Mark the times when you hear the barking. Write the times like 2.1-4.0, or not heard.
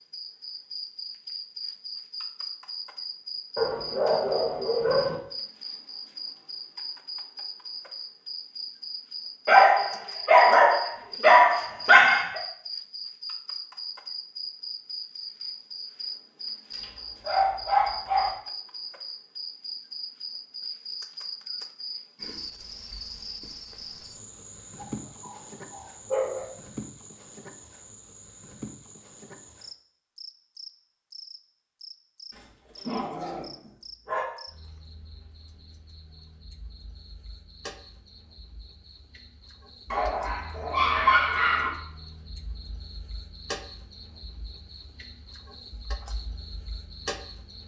3.5-5.2, 9.4-12.4, 16.7-18.4, 24.8-26.4, 32.3-34.2, 39.9-41.7.